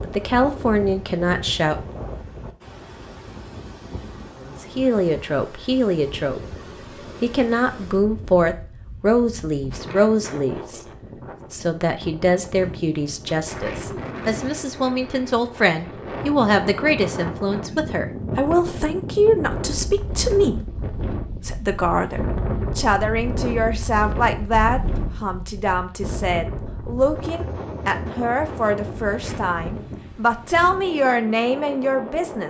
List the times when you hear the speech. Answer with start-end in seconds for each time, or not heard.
0.0-1.8, 4.4-6.5, 7.2-10.8, 11.5-32.4.